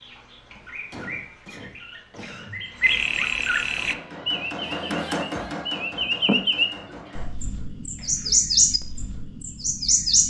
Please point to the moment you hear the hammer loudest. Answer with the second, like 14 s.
5 s.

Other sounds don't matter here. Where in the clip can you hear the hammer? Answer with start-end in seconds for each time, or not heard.
3.8-7.2.